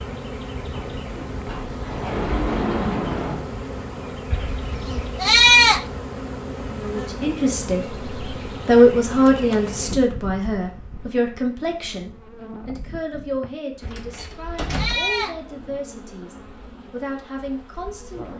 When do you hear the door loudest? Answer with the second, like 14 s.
3 s.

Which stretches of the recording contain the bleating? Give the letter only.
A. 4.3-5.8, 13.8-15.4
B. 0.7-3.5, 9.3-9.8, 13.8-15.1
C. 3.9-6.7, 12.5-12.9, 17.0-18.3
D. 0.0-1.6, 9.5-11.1
A.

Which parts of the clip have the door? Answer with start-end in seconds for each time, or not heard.
0.7-3.5, 9.3-9.8, 13.8-15.1.